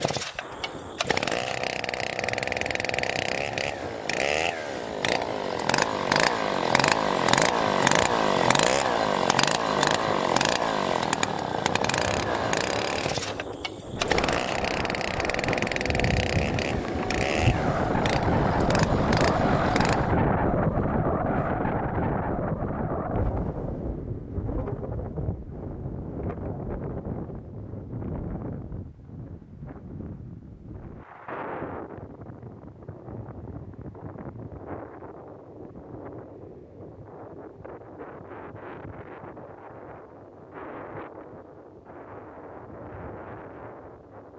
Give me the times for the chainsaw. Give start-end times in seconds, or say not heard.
0.0-20.1.